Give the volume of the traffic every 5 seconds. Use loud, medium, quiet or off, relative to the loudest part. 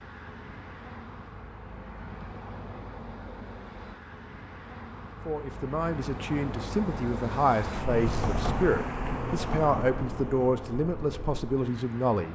medium, loud, medium.